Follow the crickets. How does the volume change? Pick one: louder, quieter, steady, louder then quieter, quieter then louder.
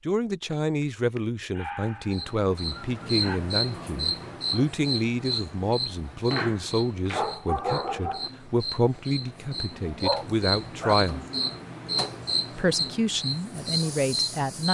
quieter then louder.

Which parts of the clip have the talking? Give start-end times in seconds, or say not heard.
0.1-11.2, 12.6-14.6.